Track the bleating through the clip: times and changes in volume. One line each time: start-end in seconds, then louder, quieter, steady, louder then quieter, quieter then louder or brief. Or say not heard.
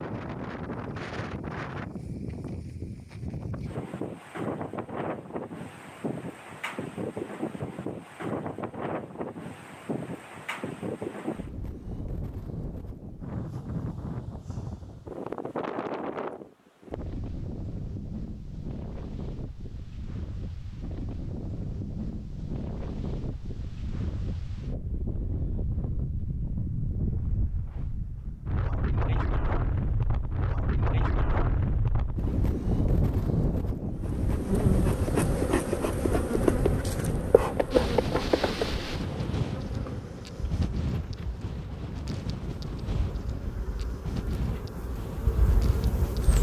not heard.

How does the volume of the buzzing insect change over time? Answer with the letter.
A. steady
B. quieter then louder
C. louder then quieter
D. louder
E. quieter
B.